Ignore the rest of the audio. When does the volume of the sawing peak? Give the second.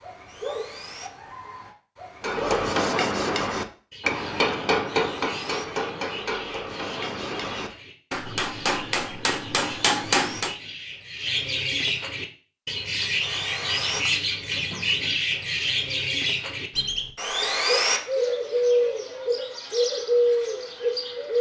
18 s.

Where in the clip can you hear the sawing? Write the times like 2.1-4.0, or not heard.
0.2-1.1, 4.8-5.7, 9.6-10.4, 13.2-14.0, 17.1-18.0.